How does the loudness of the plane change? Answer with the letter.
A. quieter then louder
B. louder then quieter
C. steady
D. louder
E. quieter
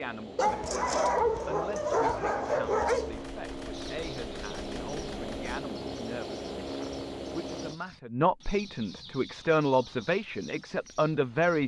D.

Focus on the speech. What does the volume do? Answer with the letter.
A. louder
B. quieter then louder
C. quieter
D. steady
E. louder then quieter
A.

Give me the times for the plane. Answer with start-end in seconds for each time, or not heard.
0.0-7.8.